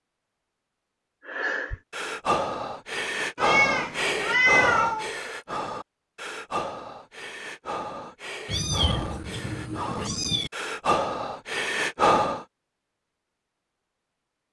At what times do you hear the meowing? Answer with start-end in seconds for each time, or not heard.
3.4-5.1, 8.4-10.5.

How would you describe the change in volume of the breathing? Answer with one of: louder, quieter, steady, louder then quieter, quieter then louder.
quieter then louder.